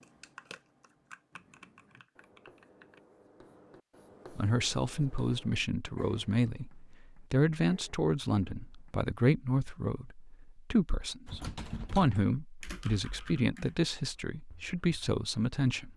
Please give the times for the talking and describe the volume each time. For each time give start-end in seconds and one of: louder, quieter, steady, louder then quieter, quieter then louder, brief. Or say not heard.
4.3-15.9 steady.